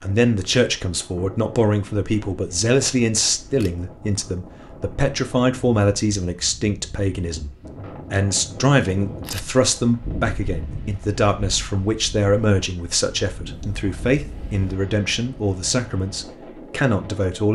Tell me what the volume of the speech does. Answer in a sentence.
The loudness of the speech stays about the same.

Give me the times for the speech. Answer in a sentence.
You can hear the speech from 0.0 to 7.5 s and from 8.1 to 17.5 s.